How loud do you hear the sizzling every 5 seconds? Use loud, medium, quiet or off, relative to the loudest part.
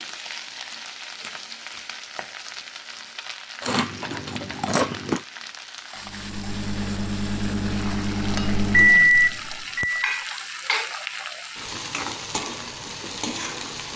medium, medium, loud.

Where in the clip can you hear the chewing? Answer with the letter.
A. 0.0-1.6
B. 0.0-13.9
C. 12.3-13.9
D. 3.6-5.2
D.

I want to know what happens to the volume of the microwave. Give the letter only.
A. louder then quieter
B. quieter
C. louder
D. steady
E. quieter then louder
A.